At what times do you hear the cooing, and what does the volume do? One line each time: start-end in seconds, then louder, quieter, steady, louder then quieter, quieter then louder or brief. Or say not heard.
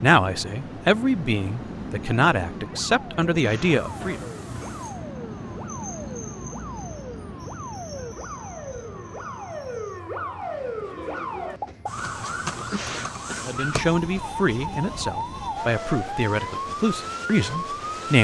not heard.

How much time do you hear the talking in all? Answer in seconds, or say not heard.
9 s.